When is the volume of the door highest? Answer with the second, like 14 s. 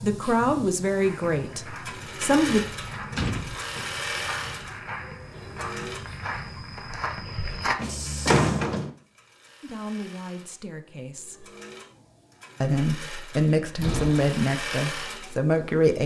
8 s.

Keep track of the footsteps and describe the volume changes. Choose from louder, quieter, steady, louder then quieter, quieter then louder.
louder.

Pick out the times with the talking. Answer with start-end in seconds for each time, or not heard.
0.0-2.6, 9.6-11.5, 12.6-16.0.